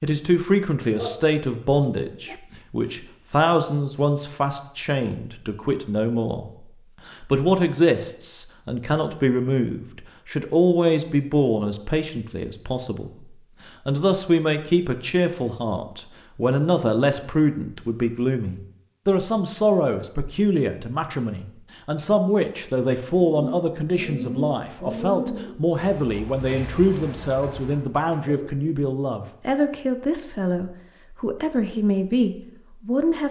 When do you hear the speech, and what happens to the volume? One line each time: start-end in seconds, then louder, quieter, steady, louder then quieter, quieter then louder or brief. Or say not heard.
0.0-13.1 steady
13.8-33.2 steady.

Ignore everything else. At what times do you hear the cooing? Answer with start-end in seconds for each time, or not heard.
23.3-28.6.